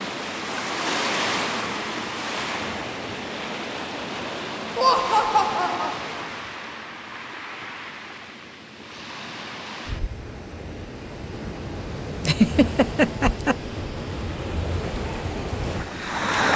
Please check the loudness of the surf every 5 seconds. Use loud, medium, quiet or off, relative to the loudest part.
loud, medium, medium, loud.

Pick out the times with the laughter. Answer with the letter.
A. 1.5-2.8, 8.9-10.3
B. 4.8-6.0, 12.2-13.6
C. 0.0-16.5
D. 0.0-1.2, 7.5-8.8
B.